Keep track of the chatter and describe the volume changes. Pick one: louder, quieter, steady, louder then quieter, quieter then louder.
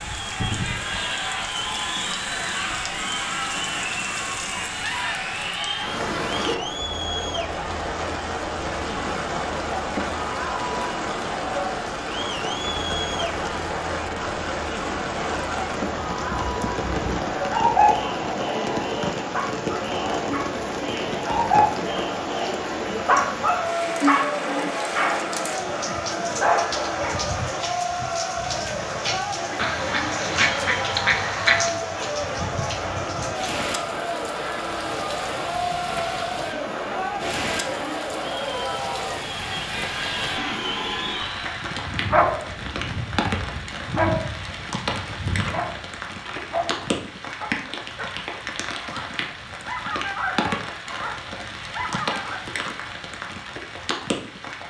steady.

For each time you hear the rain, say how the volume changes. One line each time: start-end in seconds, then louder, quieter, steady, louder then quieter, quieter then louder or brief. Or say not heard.
0.0-54.6 steady.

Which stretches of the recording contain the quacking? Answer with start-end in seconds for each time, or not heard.
29.6-31.8.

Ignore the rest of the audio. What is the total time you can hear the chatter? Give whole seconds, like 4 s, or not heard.
42 s.